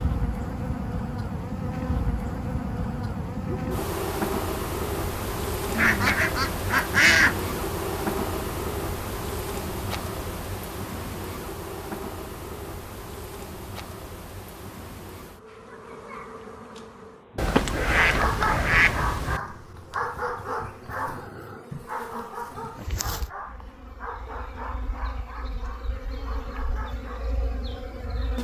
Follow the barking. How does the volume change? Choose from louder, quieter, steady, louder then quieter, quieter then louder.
quieter.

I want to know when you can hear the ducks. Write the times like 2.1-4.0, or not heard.
5.7-7.3, 17.4-19.4.